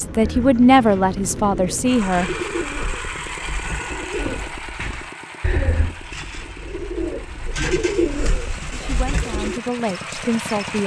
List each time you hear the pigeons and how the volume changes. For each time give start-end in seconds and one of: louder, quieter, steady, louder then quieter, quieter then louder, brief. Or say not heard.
0.2-9.6 louder.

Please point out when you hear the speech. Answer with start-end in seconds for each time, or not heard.
0.0-2.3, 8.7-10.8.